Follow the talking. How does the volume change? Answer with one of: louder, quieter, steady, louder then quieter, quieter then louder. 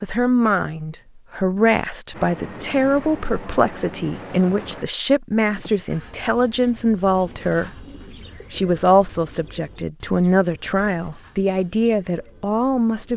steady.